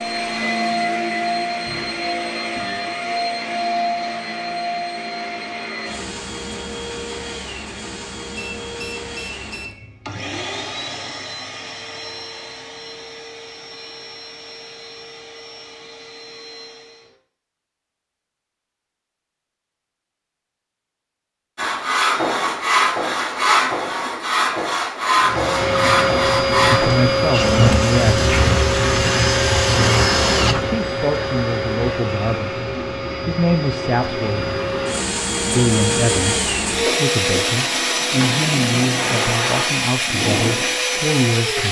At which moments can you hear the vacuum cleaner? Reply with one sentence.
The vacuum cleaner can be heard from 0.0 to 17.1 s and from 25.2 to 41.6 s.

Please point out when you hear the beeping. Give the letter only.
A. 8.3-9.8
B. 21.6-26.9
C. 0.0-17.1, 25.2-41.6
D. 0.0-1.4
A.